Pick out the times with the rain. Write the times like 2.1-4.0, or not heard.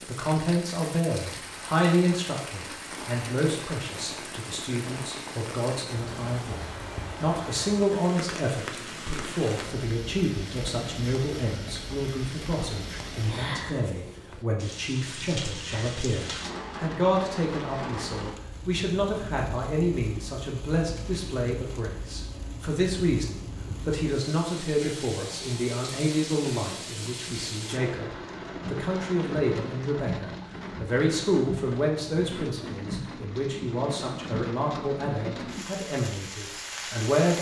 0.0-37.3.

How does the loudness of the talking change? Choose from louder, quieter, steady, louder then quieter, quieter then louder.
steady.